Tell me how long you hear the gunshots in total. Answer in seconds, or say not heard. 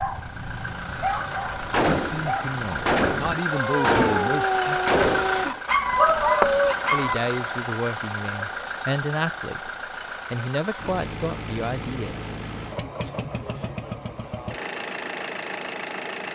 4 s.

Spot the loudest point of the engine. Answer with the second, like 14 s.
5 s.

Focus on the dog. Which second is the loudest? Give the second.
6 s.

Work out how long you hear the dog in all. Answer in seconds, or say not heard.
7 s.